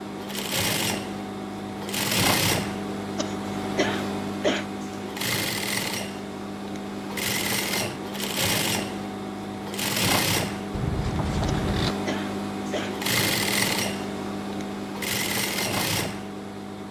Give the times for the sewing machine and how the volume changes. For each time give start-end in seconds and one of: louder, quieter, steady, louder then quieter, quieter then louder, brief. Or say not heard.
0.0-16.8 steady.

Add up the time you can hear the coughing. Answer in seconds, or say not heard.
3 s.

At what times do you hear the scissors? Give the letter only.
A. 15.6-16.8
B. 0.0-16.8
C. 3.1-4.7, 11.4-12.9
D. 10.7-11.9
D.